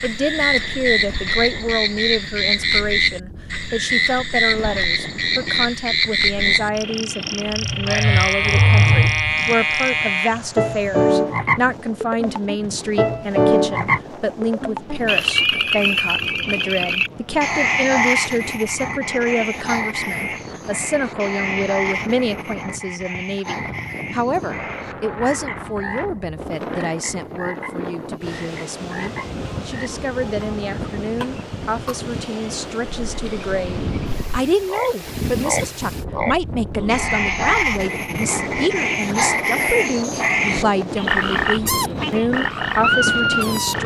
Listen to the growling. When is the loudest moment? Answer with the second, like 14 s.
9 s.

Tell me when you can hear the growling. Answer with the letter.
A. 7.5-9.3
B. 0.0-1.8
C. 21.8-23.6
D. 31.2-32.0
A.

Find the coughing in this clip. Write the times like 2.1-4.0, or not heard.
31.2-32.0.